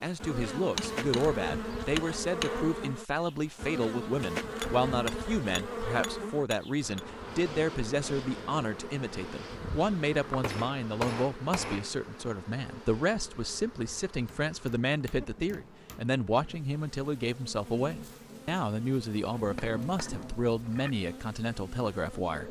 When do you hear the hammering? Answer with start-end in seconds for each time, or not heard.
0.6-2.6, 4.6-7.0, 10.4-11.9, 14.2-16.1, 19.4-20.9.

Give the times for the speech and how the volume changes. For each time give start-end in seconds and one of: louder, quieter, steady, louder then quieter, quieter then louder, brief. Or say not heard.
0.0-22.4 steady.